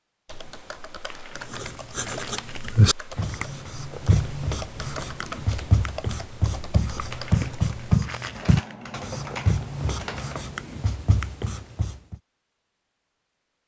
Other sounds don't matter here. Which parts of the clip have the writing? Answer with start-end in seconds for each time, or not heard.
1.5-12.2.